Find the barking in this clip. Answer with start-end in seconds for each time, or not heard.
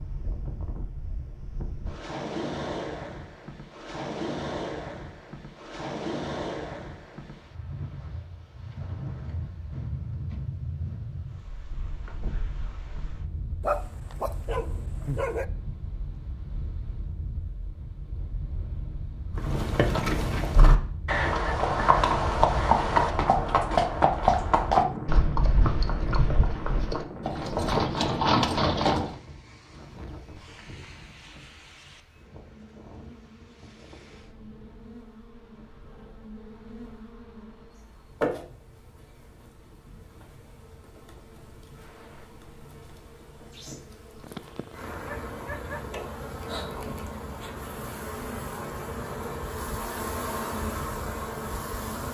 13.6-15.4, 44.2-45.9.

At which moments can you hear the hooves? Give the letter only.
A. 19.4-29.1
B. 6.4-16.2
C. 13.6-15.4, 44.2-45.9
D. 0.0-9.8
A.